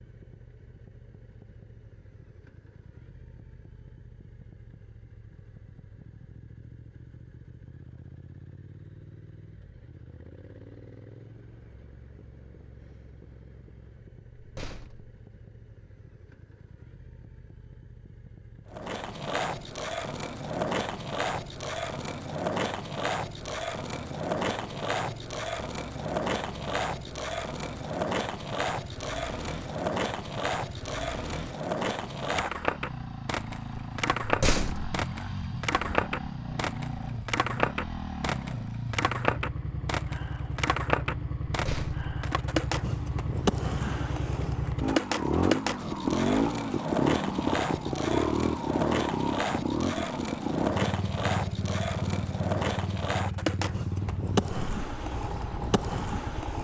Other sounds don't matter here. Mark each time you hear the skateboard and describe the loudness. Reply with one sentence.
The skateboard can be heard from 18.7 to 56.6 s, at a steady volume.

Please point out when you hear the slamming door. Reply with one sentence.
The slamming door can be heard from 14.3 to 15.2 s, from 34.2 to 35.0 s and from 41.5 to 42.1 s.